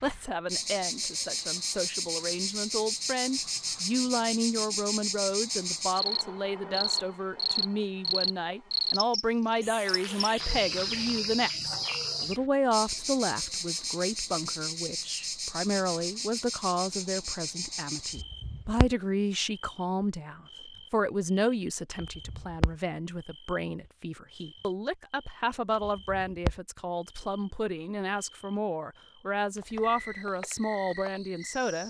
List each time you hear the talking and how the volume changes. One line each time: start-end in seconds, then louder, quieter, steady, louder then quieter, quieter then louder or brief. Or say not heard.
0.0-31.8 steady.